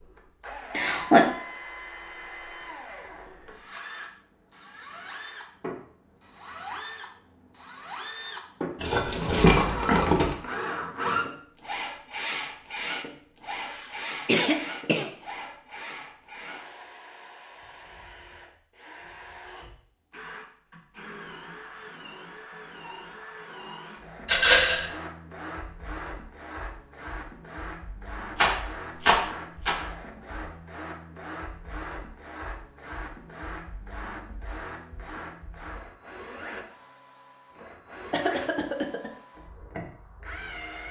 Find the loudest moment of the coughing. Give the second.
1 s.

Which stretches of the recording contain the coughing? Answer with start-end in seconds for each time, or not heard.
0.7-1.3, 13.7-15.1, 38.1-39.1.